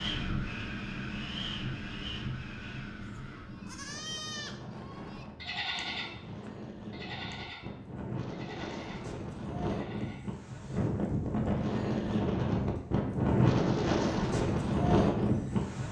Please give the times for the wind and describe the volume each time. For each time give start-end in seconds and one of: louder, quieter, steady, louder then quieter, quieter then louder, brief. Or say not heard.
0.0-15.8 quieter then louder.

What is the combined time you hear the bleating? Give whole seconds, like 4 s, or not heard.
7 s.